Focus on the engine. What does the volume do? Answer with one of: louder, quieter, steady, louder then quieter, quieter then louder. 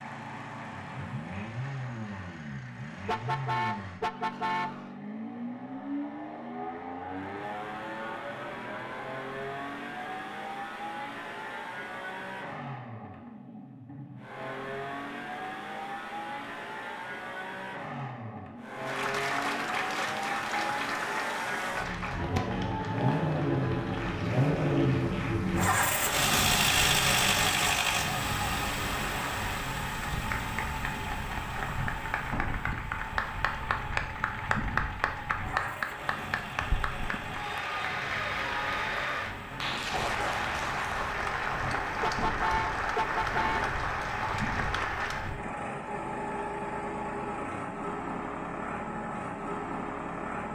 louder then quieter.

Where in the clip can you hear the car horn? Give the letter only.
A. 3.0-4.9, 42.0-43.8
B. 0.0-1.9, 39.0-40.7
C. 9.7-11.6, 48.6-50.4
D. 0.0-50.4
A.